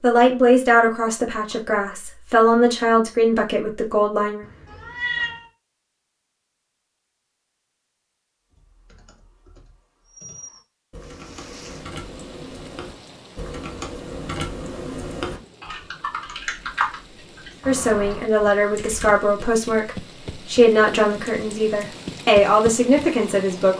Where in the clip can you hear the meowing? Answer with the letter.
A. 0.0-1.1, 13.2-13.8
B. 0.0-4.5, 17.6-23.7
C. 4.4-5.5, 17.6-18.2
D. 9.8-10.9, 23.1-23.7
C.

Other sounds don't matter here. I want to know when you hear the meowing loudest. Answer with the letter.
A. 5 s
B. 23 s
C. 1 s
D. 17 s
A.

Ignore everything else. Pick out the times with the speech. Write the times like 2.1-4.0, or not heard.
0.0-4.5, 17.6-23.7.